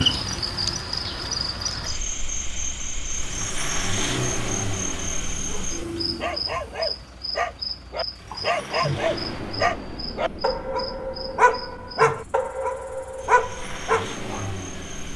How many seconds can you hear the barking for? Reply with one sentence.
You can hear the barking for 9 seconds altogether.